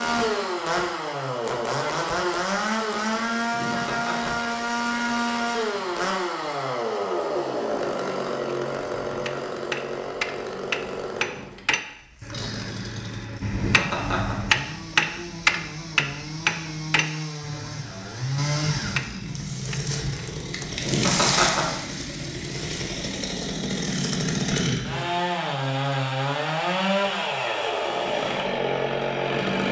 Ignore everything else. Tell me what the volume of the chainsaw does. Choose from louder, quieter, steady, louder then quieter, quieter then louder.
quieter then louder.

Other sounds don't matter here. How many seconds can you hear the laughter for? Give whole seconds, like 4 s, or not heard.
3 s.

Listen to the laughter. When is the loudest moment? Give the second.
21 s.